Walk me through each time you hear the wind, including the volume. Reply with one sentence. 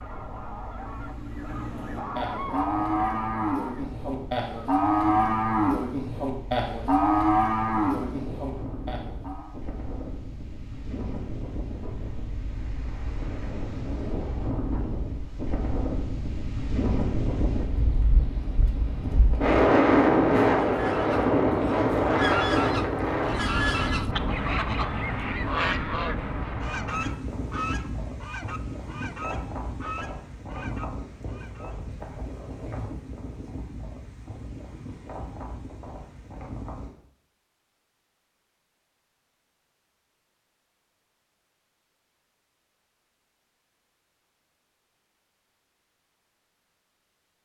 You can hear the wind from 0.0 to 36.9 s, getting louder then quieter.